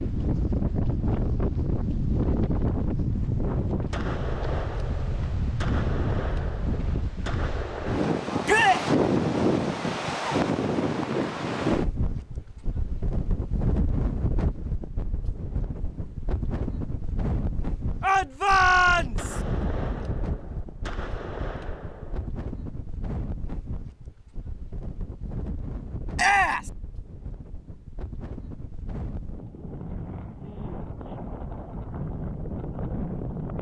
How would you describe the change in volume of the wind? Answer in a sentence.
The volume of the wind goes down.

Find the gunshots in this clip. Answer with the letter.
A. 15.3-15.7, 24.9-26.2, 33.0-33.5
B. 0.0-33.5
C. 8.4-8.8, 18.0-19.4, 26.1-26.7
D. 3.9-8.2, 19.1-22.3
D.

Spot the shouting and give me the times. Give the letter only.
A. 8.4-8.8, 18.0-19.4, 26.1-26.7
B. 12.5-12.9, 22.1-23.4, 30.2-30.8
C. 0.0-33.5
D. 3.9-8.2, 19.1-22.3
A.